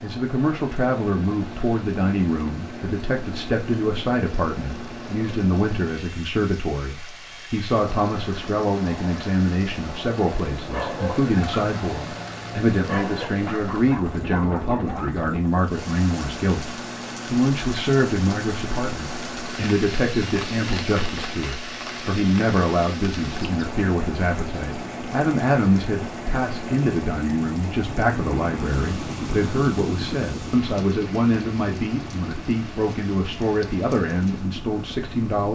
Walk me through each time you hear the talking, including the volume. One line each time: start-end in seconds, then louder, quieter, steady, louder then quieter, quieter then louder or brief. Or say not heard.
0.0-35.5 steady.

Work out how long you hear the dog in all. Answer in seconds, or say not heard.
5 s.